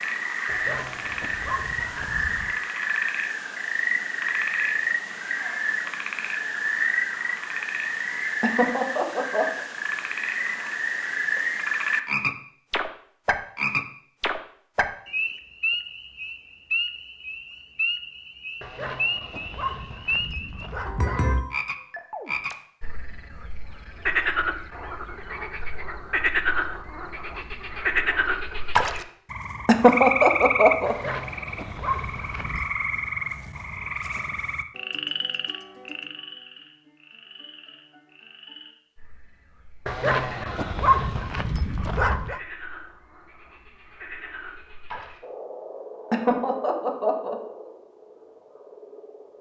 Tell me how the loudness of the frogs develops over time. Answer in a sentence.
The volume of the frogs goes down.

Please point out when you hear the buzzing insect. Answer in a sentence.
You can't hear the buzzing insect here.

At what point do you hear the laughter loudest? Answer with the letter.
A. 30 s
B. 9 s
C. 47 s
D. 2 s
A.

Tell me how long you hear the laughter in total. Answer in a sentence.
You can hear the laughter for 4 seconds altogether.